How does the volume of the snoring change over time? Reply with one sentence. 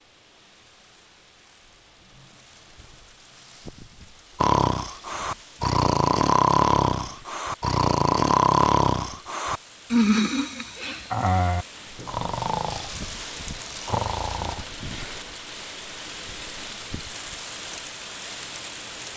The loudness of the snoring goes down.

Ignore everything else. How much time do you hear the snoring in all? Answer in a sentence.
The snoring can be heard for 11 seconds in total.